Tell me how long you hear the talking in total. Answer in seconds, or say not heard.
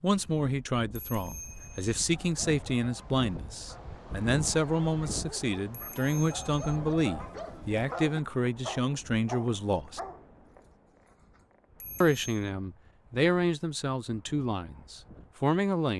14 s.